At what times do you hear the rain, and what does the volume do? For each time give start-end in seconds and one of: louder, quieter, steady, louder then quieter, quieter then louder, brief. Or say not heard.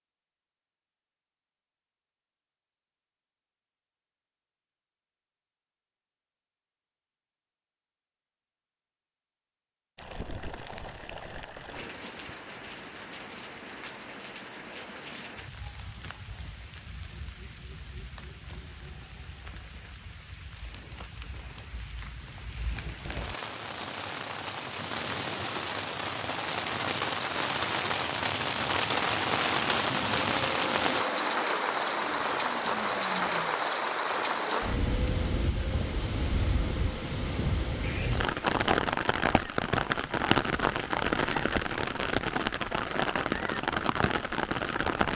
9.9-45.1 louder.